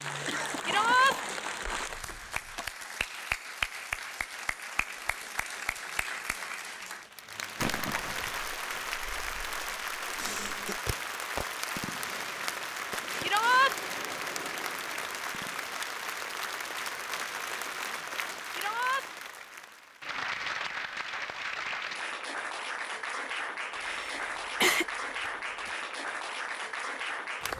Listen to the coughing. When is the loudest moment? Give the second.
25 s.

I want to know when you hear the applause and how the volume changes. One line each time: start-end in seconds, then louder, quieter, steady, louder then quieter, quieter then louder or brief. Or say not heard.
0.0-27.5 steady.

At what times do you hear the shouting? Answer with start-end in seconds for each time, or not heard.
0.7-1.1, 13.2-13.8, 18.5-19.1.